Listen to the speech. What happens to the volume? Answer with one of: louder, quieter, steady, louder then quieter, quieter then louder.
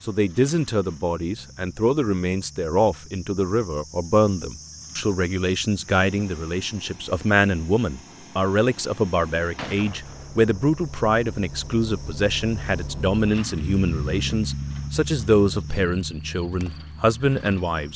steady.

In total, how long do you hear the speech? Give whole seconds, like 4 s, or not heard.
18 s.